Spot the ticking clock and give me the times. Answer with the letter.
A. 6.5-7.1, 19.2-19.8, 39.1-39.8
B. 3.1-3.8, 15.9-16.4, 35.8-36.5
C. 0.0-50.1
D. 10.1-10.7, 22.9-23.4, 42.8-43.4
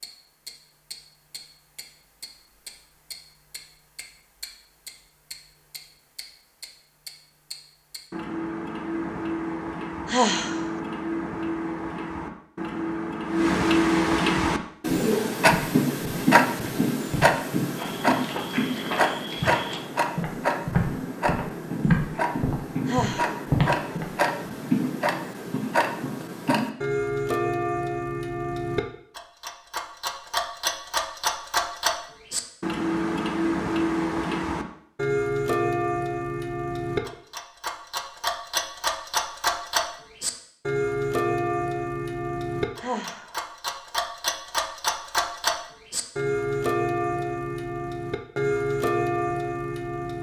C.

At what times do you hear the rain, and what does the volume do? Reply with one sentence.
You can't hear the rain here.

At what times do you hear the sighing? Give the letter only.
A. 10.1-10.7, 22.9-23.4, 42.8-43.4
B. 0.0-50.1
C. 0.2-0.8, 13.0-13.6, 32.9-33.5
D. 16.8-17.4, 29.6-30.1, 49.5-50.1
A.